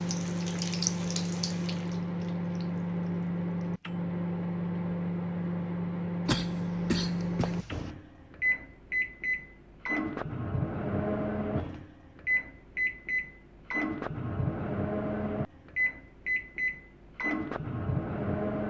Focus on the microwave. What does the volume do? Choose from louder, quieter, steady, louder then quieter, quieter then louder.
steady.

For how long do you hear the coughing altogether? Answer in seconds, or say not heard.
2 s.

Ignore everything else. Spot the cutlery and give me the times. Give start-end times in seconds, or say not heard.
not heard.